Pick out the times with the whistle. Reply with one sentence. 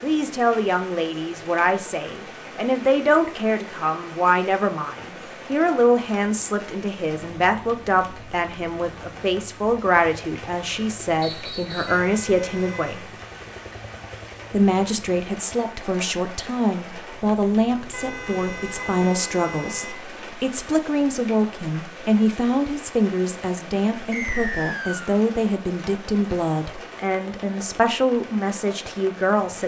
The whistle can be heard from 11.2 to 12.1 s and from 24.1 to 25.1 s.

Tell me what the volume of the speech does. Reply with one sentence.
The volume of the speech stays about the same.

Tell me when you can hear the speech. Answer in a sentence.
The speech can be heard from 0.0 to 13.1 s and from 14.5 to 29.6 s.